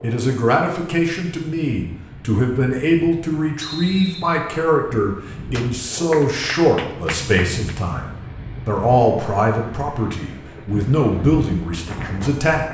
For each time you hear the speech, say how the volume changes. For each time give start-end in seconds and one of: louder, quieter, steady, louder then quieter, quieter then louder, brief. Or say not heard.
0.0-12.6 steady.